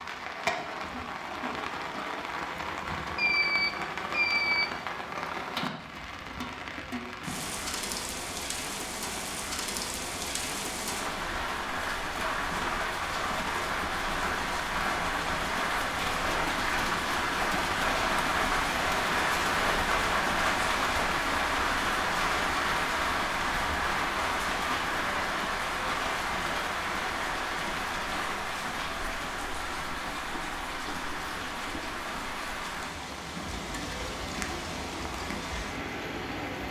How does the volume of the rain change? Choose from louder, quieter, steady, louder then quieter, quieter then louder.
louder then quieter.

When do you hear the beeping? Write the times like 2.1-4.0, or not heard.
3.1-4.7.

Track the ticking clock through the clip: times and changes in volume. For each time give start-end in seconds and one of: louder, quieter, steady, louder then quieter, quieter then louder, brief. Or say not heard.
not heard.